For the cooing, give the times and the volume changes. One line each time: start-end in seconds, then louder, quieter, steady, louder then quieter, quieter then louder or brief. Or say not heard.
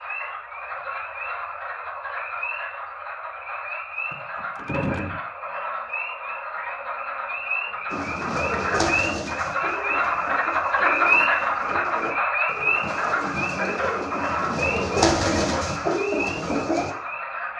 7.9-16.9 quieter then louder.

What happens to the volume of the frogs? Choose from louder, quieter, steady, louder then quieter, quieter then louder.
louder then quieter.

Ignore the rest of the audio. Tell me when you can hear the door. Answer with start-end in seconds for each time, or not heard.
4.1-5.2.